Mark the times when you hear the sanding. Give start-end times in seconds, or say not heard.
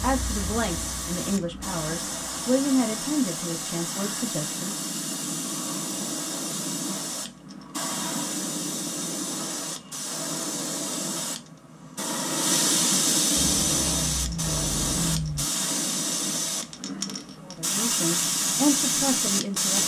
not heard.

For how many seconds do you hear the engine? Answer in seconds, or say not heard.
2 s.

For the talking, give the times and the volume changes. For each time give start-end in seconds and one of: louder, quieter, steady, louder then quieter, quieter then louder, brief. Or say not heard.
0.0-4.8 louder then quieter
17.4-19.8 brief.